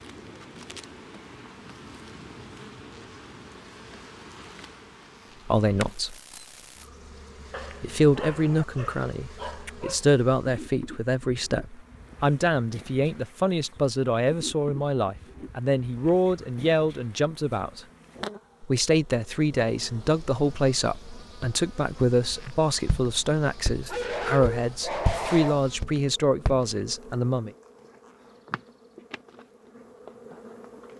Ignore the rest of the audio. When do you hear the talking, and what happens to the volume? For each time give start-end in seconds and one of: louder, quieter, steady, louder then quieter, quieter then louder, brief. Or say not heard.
5.5-6.2 brief
7.8-17.8 steady
18.6-27.5 steady.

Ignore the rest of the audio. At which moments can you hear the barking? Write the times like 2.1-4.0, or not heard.
7.5-10.0, 23.9-25.6.